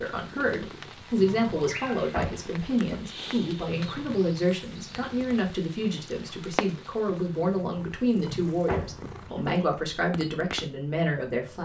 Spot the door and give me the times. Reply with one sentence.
You can hear the door from 2.1 to 3.0 s and from 8.7 to 9.7 s.